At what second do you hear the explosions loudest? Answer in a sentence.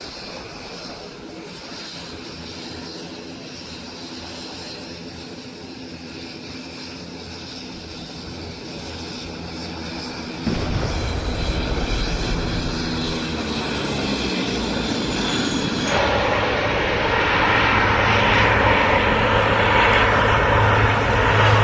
The loudest moment of the explosions is at 11 seconds.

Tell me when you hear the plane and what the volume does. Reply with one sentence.
The plane can be heard from 0.0 to 21.6 s, getting louder.